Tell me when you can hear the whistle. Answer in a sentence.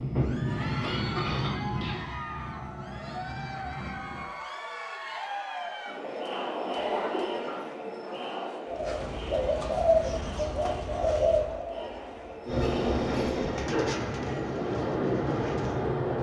The whistle can't be heard in this clip.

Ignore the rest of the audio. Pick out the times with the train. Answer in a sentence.
You can hear the train from 0.0 to 4.2 s and from 12.4 to 16.1 s.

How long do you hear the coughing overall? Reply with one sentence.
You can hear the coughing for 3 seconds altogether.